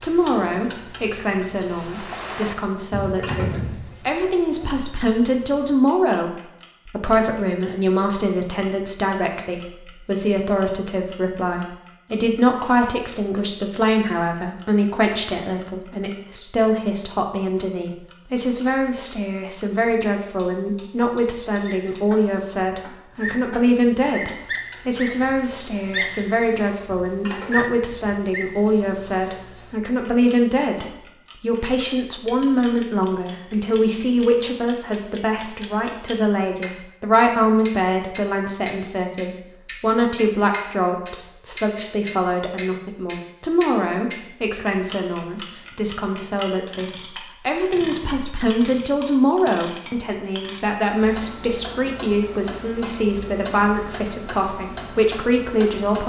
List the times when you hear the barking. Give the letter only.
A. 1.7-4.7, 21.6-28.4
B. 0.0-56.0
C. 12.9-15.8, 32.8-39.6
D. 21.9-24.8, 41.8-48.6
A.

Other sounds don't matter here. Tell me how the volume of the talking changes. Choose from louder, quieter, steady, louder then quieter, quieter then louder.
steady.